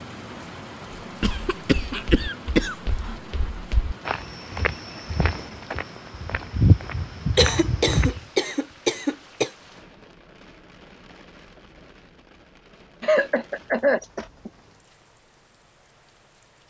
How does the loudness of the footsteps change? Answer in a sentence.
The volume of the footsteps goes up.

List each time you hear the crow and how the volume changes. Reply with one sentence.
The crow can't be heard in this clip.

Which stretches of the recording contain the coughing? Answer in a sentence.
The coughing can be heard from 1.2 to 3.1 s, from 7.3 to 9.5 s and from 13.0 to 14.5 s.